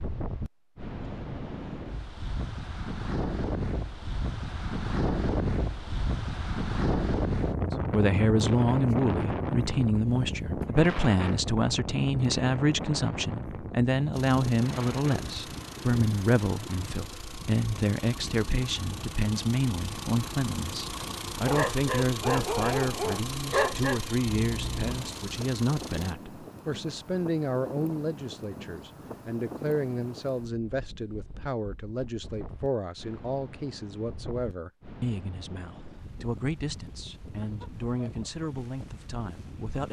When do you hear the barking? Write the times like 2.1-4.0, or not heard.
21.4-25.0.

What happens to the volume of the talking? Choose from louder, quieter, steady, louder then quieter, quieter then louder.
quieter.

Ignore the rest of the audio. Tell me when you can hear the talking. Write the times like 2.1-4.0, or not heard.
7.9-39.8.